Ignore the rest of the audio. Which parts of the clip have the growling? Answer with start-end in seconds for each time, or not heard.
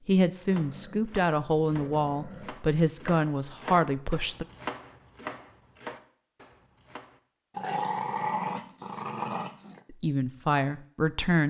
0.5-2.5, 7.5-9.8.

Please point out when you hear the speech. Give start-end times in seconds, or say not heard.
0.1-4.5, 9.9-11.4.